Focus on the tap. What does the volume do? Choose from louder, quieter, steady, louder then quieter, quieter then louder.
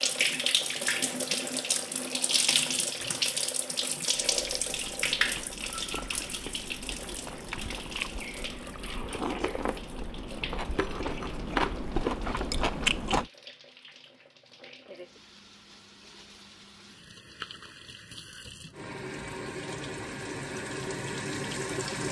quieter then louder.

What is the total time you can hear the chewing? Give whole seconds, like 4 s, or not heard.
9 s.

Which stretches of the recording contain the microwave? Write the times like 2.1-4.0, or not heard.
not heard.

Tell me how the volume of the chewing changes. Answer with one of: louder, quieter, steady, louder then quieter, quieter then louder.
louder.